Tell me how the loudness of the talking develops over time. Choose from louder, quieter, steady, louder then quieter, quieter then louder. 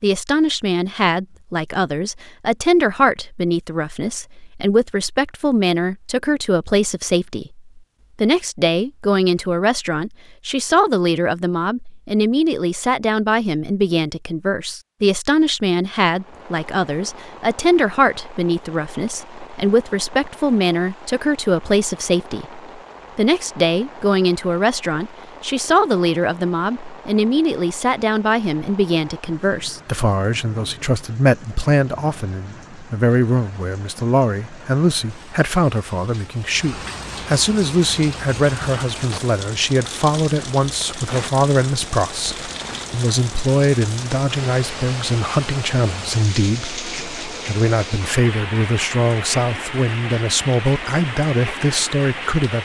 steady.